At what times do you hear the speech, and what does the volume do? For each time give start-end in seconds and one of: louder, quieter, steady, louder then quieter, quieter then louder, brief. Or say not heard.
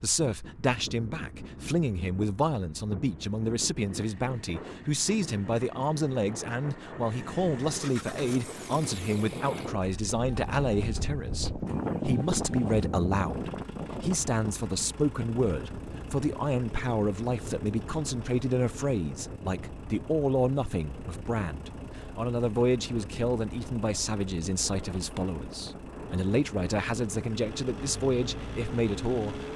0.0-29.4 steady.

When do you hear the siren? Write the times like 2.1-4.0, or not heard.
not heard.